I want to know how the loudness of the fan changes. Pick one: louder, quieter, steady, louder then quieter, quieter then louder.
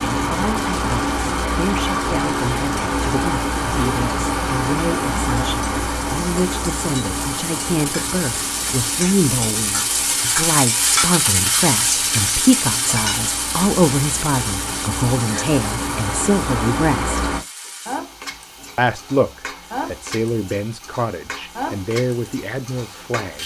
quieter then louder.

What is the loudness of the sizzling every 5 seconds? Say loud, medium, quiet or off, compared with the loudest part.
quiet, medium, loud, medium, medium.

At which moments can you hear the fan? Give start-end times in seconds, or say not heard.
0.0-17.4.